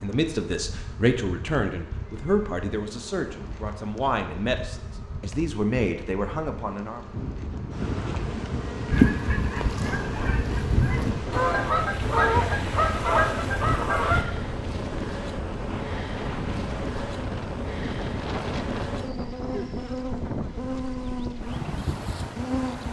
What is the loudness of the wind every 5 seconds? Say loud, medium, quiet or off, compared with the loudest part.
off, loud, loud, loud, loud.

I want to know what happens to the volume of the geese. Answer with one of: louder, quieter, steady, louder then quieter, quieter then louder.
louder.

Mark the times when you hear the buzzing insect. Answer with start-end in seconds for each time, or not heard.
0.0-22.8.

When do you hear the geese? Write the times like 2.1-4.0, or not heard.
8.9-14.2.